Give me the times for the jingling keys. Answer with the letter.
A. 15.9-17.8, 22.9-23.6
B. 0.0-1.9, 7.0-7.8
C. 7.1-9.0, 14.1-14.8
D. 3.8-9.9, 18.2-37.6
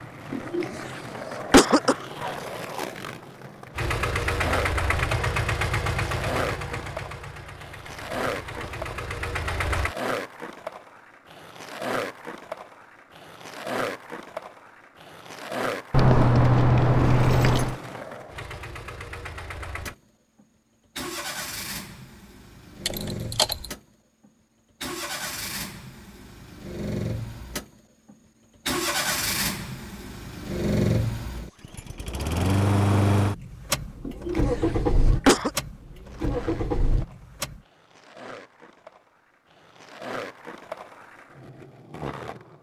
A.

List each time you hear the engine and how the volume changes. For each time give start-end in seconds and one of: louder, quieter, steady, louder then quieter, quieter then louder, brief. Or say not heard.
3.8-9.9 quieter then louder
18.2-37.6 louder.